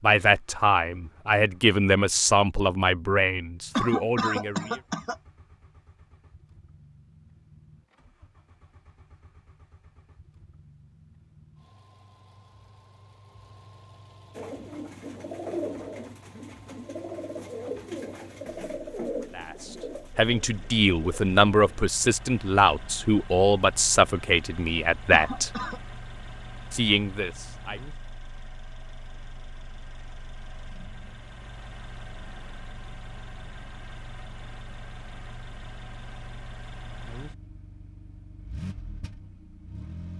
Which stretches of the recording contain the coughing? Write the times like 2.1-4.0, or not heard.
3.8-5.2, 25.1-25.8.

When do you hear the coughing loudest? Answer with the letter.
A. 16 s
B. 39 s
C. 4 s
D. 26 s
C.